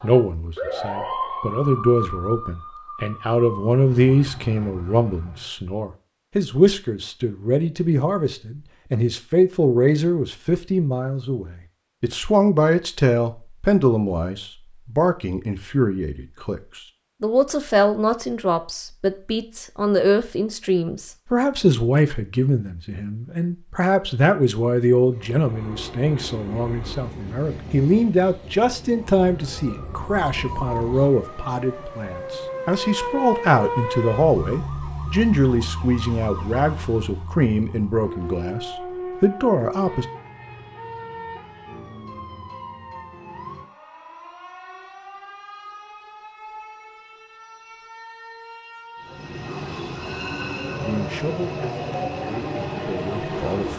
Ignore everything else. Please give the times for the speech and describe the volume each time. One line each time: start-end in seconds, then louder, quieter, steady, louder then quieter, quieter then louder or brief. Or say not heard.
0.0-40.0 steady
50.9-53.7 brief.